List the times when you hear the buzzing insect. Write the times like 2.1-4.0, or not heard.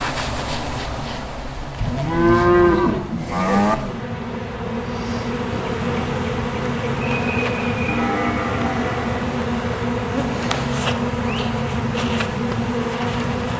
0.0-13.5.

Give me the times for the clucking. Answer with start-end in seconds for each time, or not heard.
not heard.